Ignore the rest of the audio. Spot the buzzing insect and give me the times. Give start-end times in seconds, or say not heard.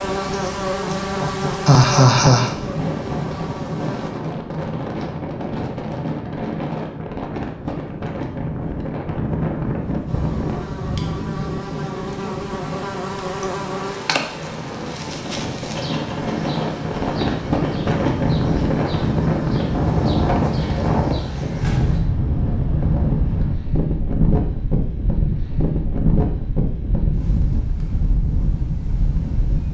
0.0-4.2, 10.1-22.0.